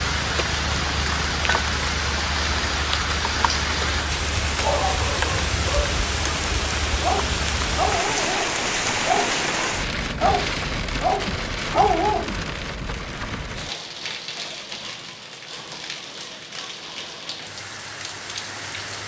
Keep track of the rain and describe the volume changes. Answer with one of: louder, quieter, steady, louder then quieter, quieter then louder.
quieter.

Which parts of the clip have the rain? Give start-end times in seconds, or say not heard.
0.0-19.0.